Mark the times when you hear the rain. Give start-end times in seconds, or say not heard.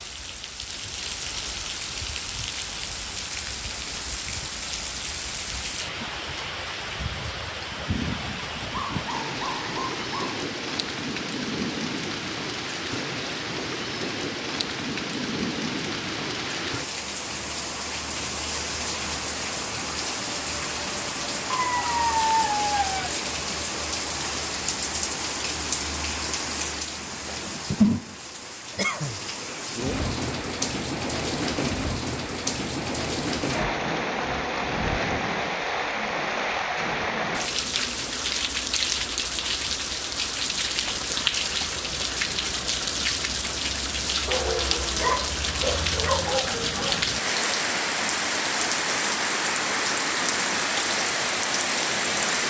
0.0-52.4.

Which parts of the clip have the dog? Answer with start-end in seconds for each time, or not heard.
8.7-10.4, 21.5-23.1, 44.2-47.0.